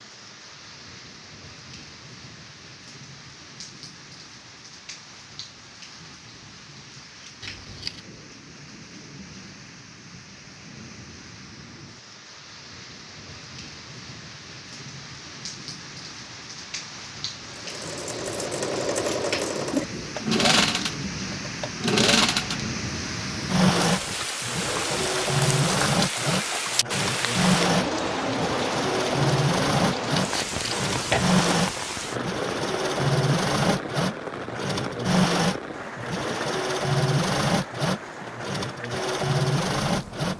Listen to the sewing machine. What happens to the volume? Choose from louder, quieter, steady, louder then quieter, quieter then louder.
steady.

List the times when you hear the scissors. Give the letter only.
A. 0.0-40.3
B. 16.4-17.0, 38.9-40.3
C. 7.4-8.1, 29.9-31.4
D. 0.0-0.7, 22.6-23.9
C.